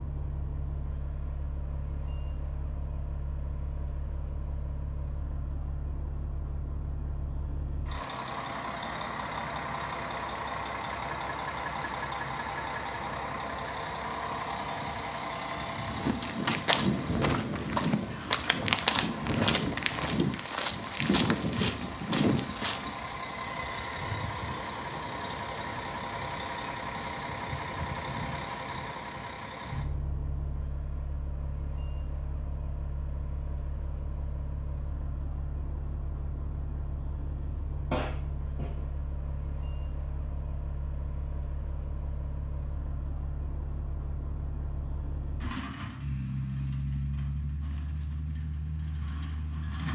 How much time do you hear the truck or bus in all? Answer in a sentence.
You can hear the truck or bus for 50 seconds altogether.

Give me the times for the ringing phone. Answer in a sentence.
You can't hear the ringing phone here.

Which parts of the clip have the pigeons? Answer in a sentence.
You can't hear the pigeons here.